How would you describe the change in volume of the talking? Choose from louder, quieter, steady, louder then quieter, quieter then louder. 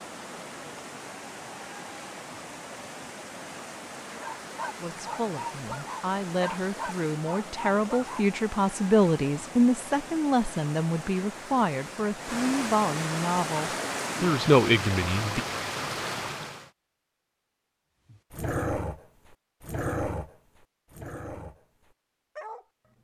louder.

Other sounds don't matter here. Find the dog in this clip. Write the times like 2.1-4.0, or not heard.
4.2-8.2, 18.1-22.9.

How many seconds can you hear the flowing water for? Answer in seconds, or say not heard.
17 s.